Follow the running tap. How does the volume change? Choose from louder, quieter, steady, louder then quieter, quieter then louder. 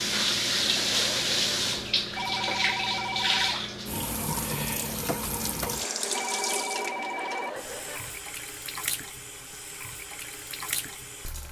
quieter.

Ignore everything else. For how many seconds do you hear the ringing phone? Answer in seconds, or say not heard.
3 s.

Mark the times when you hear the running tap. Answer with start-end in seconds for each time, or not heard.
0.0-11.4.